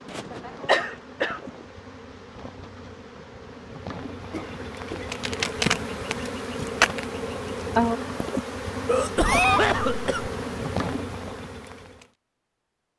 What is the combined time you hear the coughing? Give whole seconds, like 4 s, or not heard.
4 s.